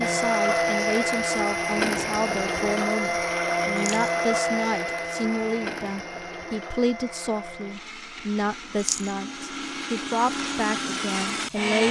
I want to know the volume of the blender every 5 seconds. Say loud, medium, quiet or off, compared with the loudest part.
loud, medium, loud.